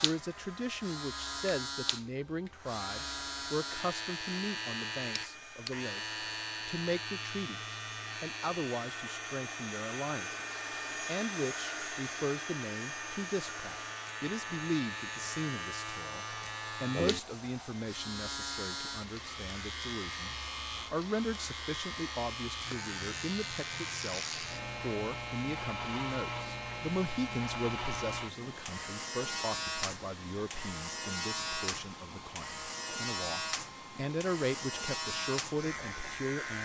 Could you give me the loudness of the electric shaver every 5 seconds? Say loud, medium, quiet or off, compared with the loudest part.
loud, loud, medium, loud, loud, loud, loud, loud.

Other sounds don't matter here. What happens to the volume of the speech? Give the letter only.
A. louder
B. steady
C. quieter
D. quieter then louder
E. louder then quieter
B.